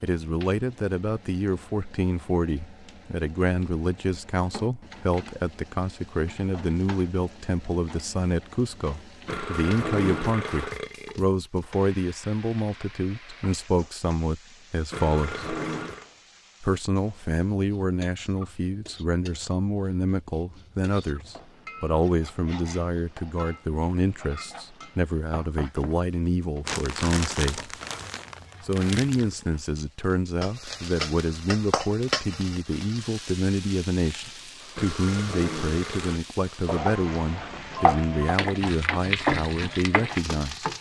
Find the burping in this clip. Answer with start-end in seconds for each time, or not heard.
9.2-11.3, 14.9-16.1, 34.8-36.2.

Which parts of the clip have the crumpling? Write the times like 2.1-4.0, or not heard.
26.6-29.4.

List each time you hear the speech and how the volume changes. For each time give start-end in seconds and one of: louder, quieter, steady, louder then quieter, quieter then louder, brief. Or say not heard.
0.0-15.4 steady
16.6-27.8 steady
28.6-40.6 steady.